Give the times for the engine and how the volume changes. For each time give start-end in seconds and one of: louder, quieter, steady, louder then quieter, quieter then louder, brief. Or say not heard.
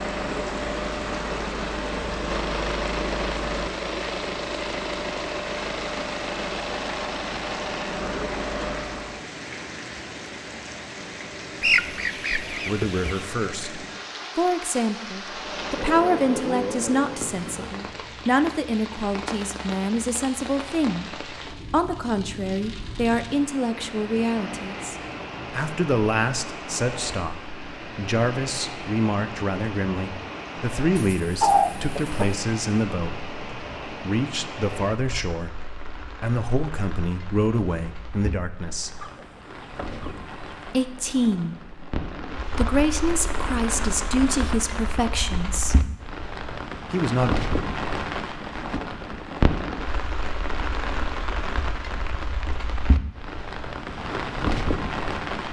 0.0-9.2 steady
15.2-17.2 brief.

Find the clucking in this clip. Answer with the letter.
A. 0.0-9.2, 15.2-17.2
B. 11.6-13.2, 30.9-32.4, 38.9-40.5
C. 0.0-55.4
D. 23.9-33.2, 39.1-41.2
B.